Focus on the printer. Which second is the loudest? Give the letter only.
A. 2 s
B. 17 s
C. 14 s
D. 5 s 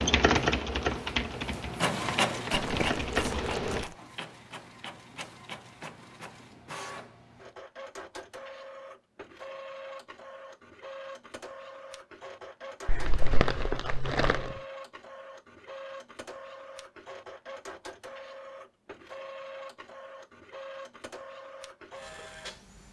A.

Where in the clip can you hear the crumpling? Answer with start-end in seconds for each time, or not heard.
2.5-4.0, 12.8-14.6.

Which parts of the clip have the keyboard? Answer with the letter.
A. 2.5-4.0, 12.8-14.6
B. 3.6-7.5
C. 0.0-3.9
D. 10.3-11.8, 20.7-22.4
C.